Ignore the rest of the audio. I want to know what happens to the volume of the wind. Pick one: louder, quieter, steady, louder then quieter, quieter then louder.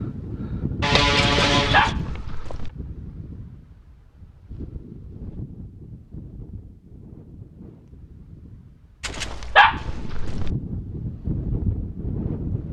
quieter then louder.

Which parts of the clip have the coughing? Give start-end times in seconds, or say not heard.
0.8-1.9.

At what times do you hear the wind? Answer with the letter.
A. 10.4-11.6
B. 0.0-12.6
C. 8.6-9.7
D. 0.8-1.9
B.